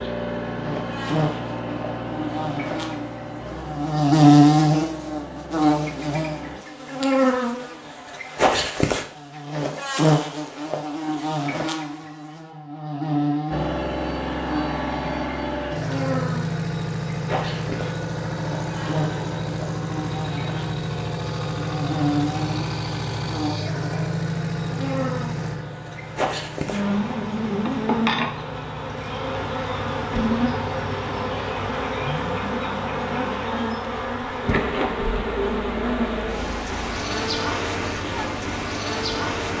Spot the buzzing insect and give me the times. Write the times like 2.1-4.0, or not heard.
0.0-39.5.